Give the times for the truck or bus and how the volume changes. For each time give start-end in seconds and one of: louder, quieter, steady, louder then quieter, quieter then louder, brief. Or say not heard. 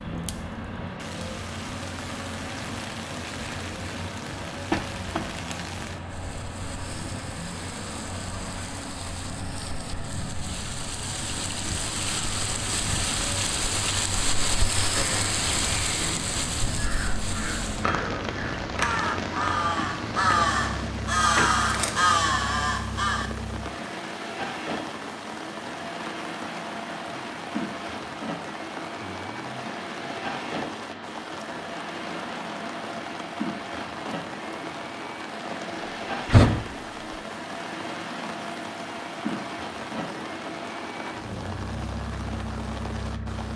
0.0-43.5 steady.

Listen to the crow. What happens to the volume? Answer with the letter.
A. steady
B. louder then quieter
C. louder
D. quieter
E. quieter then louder
C.